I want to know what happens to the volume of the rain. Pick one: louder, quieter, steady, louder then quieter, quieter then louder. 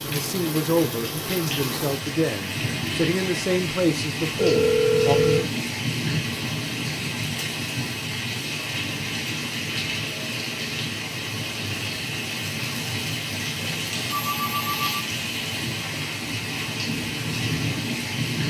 steady.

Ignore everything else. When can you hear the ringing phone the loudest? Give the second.
5 s.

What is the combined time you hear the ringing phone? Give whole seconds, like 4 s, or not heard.
2 s.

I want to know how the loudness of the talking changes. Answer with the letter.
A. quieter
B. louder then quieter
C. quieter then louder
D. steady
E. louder
D.